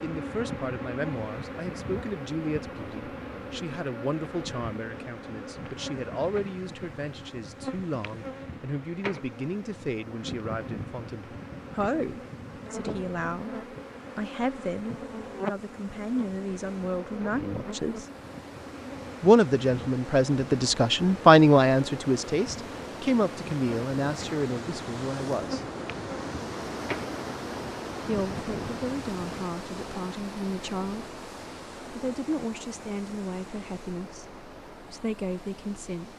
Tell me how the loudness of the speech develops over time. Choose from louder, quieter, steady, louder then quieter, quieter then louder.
louder then quieter.